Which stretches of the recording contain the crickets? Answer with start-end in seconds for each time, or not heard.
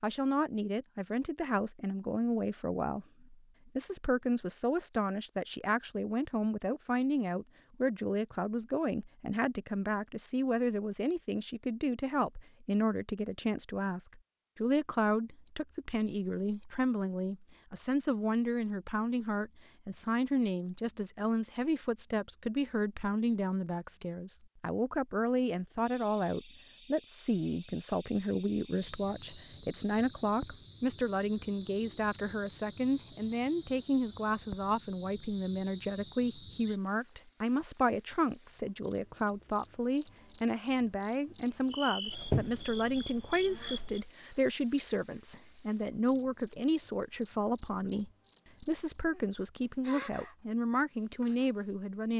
25.9-52.1.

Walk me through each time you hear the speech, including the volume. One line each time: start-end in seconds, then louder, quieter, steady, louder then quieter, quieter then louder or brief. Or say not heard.
0.0-52.1 steady.